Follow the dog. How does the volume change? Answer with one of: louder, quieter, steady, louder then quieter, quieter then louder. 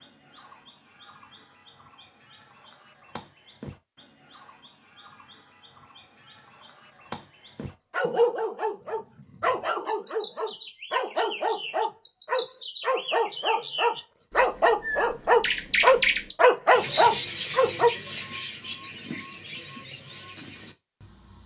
louder.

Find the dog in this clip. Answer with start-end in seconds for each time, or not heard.
7.9-17.9.